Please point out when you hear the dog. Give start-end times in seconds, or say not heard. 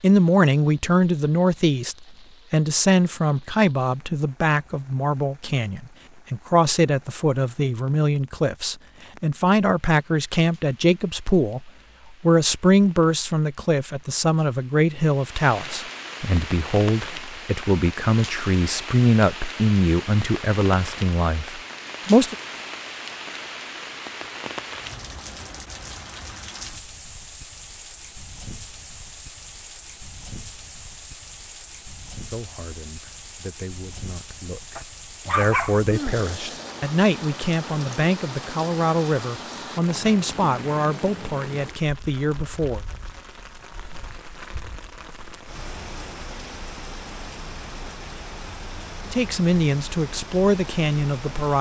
34.8-36.2.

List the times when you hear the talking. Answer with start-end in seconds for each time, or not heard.
0.0-22.4, 32.2-42.8, 49.1-51.5.